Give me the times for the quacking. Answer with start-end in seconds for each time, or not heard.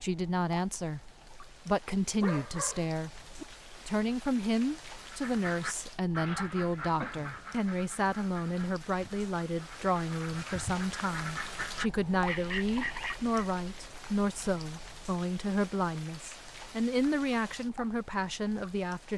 5.0-13.3.